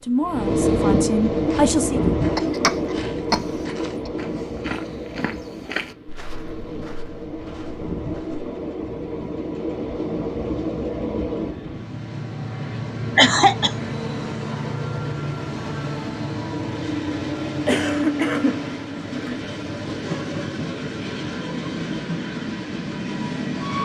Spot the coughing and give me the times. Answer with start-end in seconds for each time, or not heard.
2.4-3.6, 13.2-13.7, 17.6-19.4.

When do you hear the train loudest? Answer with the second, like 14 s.
1 s.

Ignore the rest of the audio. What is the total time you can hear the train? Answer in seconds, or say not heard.
24 s.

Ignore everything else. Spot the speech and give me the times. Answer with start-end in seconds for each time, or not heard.
0.0-2.1.